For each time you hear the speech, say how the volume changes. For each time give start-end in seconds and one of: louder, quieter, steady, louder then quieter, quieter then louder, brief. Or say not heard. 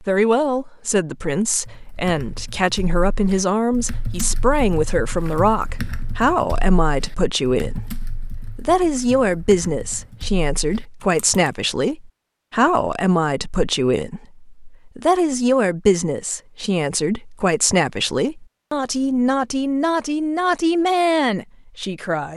0.0-22.3 steady.